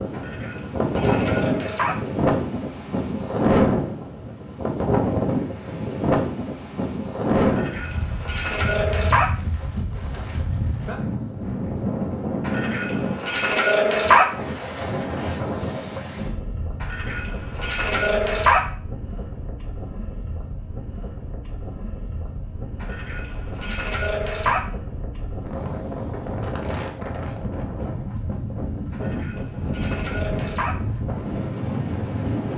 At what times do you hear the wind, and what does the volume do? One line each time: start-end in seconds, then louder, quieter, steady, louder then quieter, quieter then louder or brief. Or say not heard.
0.0-32.5 quieter then louder.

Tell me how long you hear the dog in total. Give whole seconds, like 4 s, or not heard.
11 s.